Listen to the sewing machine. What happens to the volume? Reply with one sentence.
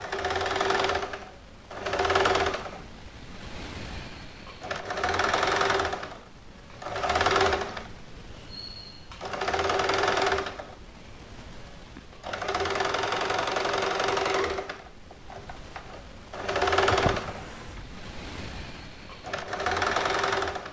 The loudness of the sewing machine stays about the same.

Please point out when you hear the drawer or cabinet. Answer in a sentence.
You can hear the drawer or cabinet from 16.9 to 17.9 s.